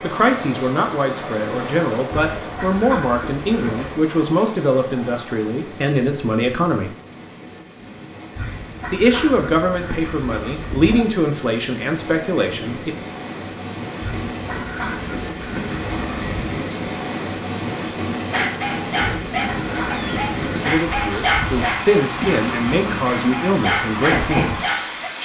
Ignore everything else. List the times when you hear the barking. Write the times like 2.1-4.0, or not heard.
18.3-25.1.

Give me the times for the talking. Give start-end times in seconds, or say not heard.
0.0-6.9, 8.9-12.9, 20.6-24.6.